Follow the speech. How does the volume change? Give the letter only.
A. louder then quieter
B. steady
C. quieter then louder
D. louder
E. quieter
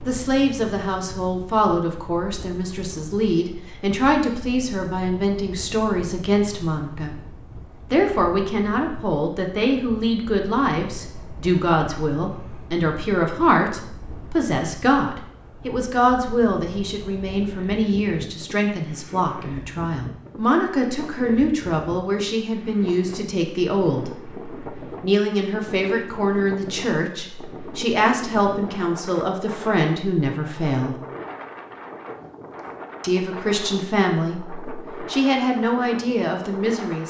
B.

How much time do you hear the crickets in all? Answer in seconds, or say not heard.
not heard.